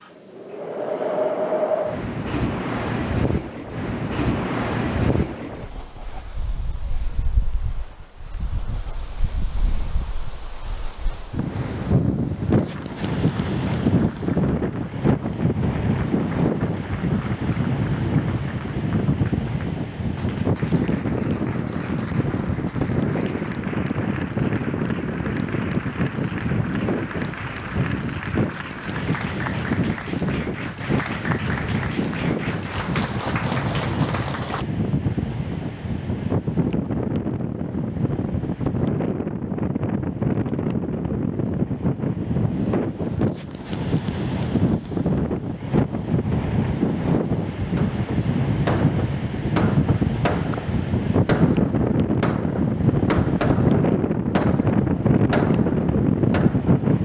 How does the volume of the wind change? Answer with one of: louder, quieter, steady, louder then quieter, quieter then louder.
louder.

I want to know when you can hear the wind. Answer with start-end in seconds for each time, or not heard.
0.0-57.0.